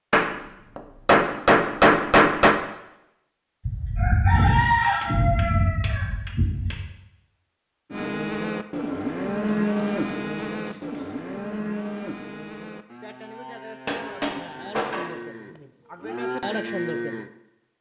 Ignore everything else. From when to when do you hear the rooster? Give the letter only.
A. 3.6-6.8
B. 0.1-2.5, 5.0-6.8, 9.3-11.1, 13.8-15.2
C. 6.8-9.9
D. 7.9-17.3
A.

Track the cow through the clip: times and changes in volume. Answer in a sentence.
The cow can be heard from 7.9 to 17.3 s, getting quieter then louder.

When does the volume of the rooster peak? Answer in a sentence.
The loudest moment of the rooster is at 5 seconds.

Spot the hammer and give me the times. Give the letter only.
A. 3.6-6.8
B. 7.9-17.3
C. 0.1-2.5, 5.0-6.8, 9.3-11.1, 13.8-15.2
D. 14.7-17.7
C.